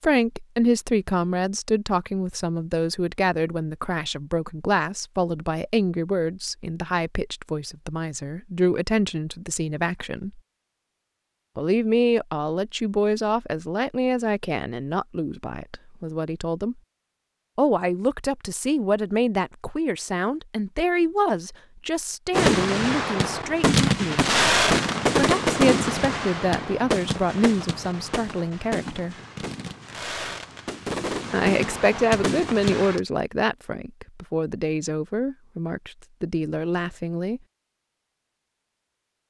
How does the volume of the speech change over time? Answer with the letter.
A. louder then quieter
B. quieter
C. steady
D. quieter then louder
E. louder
C.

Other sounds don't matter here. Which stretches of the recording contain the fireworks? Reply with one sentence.
The fireworks can be heard from 22.3 to 33.0 s.